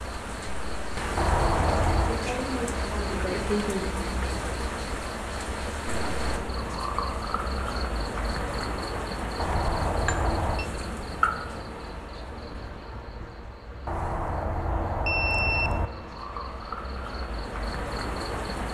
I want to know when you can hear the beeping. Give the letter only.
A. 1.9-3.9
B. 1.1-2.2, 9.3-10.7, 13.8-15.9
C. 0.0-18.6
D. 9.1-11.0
B.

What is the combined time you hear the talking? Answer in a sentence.
You can hear the talking for 2 seconds altogether.